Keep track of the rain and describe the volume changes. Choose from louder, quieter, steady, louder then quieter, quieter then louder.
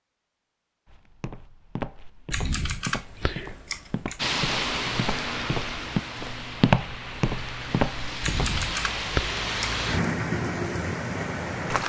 quieter then louder.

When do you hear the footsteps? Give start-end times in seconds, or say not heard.
0.8-8.6.